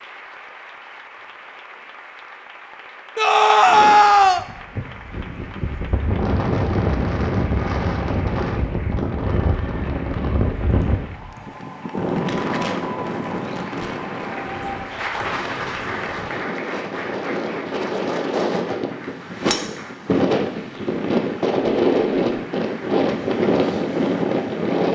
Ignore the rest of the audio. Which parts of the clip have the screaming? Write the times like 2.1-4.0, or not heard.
3.1-4.5.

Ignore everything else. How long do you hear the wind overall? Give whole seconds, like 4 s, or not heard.
21 s.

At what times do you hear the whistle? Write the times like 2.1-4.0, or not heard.
not heard.